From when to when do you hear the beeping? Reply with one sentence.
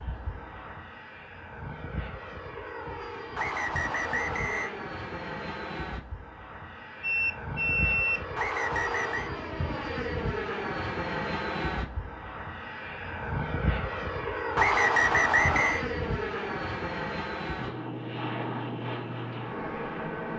The beeping can be heard from 7.0 to 8.2 s.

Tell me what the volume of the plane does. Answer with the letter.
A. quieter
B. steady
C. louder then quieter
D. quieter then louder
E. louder
E.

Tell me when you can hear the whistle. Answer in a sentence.
You can hear the whistle from 3.4 to 4.7 s, from 8.3 to 9.3 s and from 14.6 to 15.8 s.